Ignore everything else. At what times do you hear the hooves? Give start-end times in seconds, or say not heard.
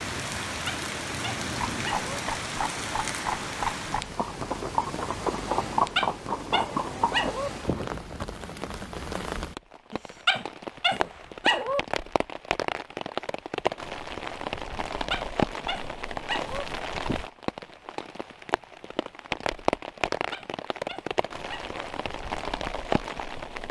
1.4-8.2.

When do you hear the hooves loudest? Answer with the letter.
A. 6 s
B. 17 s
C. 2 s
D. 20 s
A.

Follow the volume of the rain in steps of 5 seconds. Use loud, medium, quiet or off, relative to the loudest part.
loud, medium, loud, loud, loud.